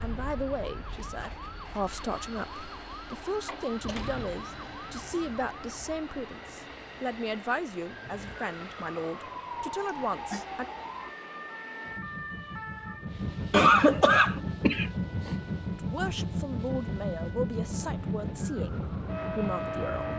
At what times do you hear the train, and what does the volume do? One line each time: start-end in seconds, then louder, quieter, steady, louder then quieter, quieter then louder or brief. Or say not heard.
0.0-20.1 louder.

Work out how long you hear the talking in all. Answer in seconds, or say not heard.
15 s.